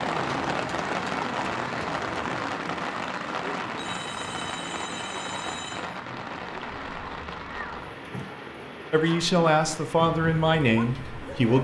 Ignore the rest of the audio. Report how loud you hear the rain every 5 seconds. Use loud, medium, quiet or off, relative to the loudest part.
loud, medium, medium.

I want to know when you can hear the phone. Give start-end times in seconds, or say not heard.
3.8-6.0.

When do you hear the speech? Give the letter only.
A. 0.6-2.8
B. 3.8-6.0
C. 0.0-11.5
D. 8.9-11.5
D.